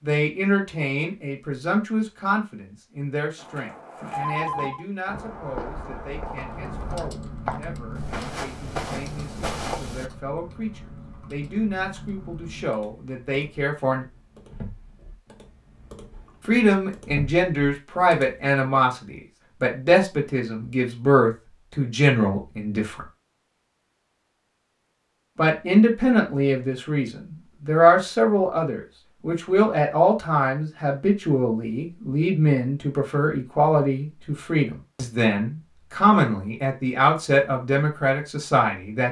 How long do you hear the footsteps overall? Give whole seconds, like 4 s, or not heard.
7 s.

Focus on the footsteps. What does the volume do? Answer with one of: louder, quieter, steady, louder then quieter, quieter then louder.
louder.